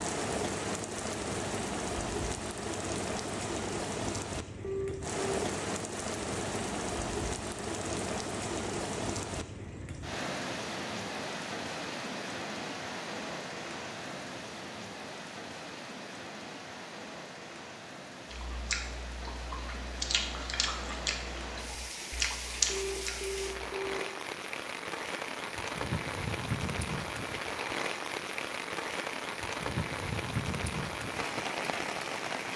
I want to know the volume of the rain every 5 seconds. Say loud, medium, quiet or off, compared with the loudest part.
loud, loud, loud, medium, medium, loud, loud.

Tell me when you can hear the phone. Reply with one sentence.
The phone can be heard from 4.6 to 5.4 s and from 22.6 to 24.0 s.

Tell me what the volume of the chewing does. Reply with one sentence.
The loudness of the chewing goes down, then up.